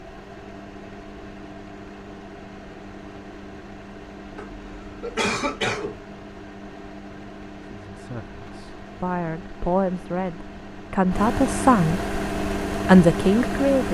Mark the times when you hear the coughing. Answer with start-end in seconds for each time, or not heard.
4.3-6.0.